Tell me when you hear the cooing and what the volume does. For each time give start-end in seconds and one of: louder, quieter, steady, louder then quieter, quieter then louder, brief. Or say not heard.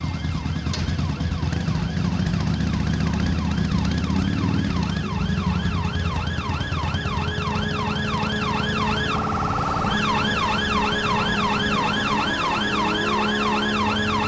not heard.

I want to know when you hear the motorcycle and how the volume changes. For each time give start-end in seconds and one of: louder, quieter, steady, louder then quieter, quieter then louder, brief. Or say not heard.
0.0-14.2 quieter.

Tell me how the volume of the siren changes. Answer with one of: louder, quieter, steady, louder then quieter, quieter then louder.
louder.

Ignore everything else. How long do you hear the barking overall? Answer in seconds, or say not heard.
not heard.